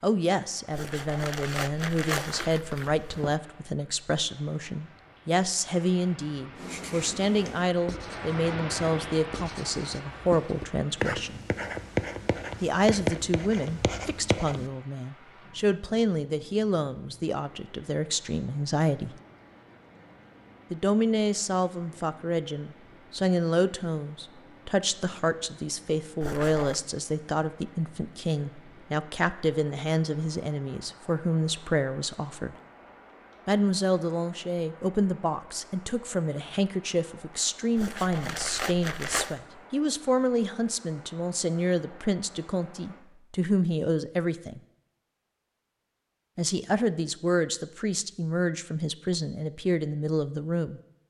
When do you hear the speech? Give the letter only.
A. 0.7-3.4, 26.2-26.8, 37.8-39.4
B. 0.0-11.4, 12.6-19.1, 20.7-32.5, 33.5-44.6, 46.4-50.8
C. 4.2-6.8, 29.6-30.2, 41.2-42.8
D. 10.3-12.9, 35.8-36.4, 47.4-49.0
B.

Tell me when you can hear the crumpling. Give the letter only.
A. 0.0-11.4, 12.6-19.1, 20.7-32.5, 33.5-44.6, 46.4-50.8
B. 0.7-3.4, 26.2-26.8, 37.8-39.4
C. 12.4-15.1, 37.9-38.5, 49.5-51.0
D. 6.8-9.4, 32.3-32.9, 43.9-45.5
B.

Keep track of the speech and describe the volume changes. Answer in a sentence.
The volume of the speech stays about the same.